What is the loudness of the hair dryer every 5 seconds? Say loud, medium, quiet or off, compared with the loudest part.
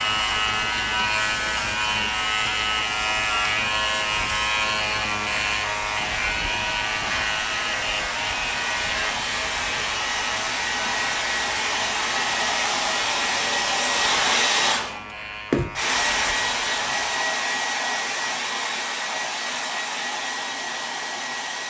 medium, medium, loud, loud, medium.